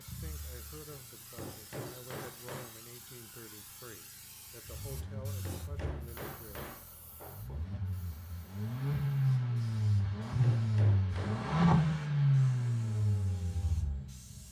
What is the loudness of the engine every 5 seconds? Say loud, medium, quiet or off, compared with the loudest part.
quiet, medium, loud.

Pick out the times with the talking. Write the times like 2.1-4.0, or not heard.
0.0-6.7.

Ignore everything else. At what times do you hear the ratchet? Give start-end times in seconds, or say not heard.
not heard.